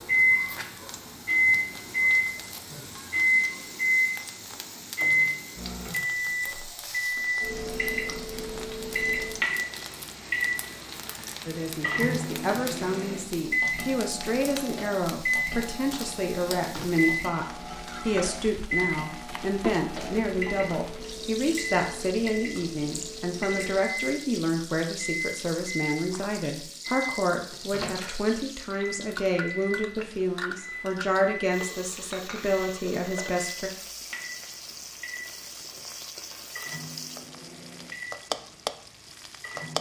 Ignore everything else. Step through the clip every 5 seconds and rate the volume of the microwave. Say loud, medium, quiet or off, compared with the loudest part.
loud, medium, medium, medium, quiet, quiet, quiet, quiet.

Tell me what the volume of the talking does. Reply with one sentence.
The volume of the talking stays about the same.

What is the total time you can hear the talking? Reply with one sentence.
You can hear the talking for 22 seconds altogether.